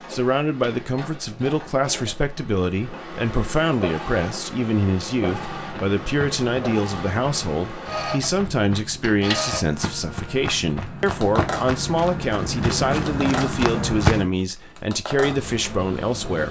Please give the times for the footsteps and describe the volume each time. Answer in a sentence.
The footsteps can be heard from 5.3 to 14.3 s, getting louder.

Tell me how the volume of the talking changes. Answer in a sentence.
The volume of the talking stays about the same.